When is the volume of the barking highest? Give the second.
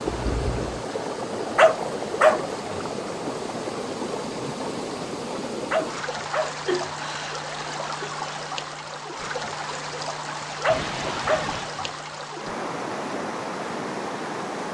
2 s.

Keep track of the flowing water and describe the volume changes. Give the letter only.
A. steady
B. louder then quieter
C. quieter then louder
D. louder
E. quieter
A.